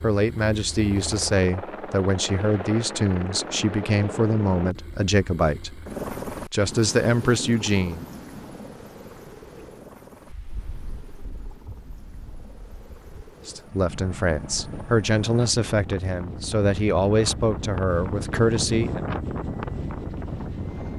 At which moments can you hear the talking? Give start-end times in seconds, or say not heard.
0.0-8.1, 13.4-19.1.